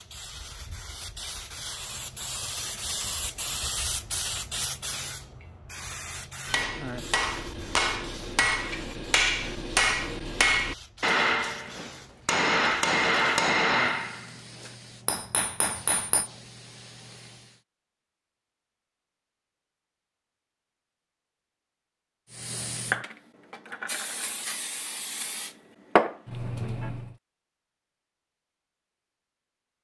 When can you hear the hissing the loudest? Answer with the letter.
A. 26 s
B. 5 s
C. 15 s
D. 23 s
A.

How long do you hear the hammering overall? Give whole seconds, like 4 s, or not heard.
10 s.